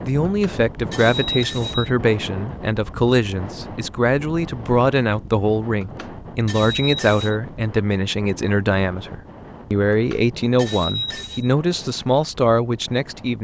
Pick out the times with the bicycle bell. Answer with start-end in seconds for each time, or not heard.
0.2-1.9, 5.8-7.3, 9.9-11.5.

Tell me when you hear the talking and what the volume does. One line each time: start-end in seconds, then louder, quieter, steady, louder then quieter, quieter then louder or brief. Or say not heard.
0.0-13.3 steady.